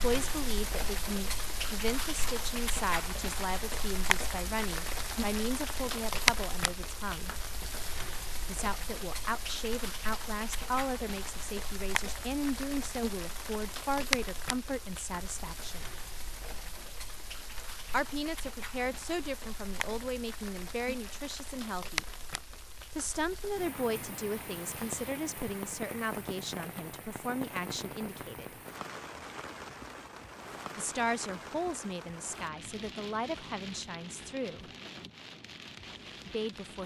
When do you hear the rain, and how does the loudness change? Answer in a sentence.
The rain can be heard from 0.0 to 36.8 s, getting quieter.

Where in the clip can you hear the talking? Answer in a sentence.
The talking can be heard from 0.0 to 7.3 s, from 8.4 to 15.8 s, from 17.9 to 22.1 s, from 22.9 to 28.6 s, from 30.8 to 34.6 s and from 36.2 to 36.8 s.